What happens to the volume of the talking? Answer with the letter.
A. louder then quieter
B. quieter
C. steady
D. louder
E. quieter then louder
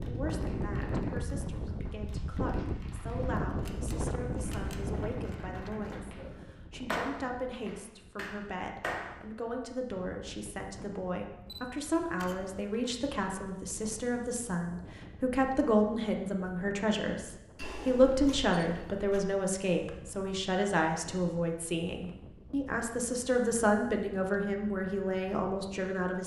D.